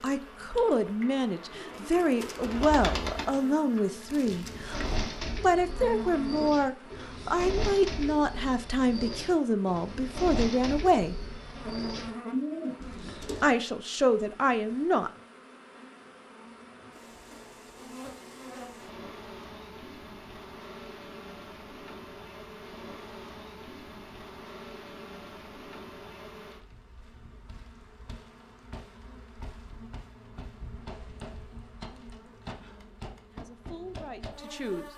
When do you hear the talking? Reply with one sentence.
You can hear the talking from 0.0 to 11.2 s, from 13.4 to 15.1 s and from 33.3 to 34.9 s.